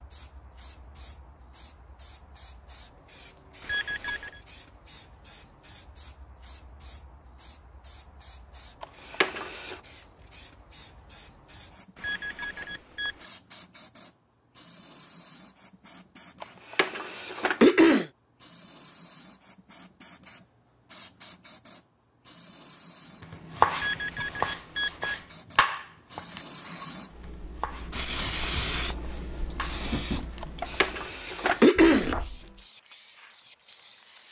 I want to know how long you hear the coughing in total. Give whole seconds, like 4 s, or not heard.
4 s.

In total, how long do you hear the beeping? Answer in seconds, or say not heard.
4 s.